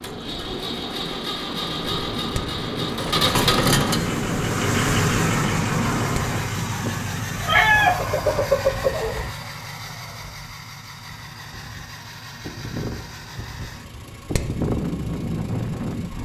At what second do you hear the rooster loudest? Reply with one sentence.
The loudest moment of the rooster is at 8 seconds.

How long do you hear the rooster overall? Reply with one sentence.
You can hear the rooster for 2 seconds altogether.